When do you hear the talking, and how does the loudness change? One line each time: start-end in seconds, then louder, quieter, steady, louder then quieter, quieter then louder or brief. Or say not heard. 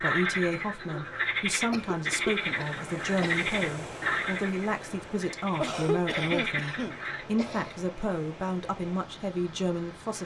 0.0-10.2 steady.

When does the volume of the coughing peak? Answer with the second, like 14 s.
6 s.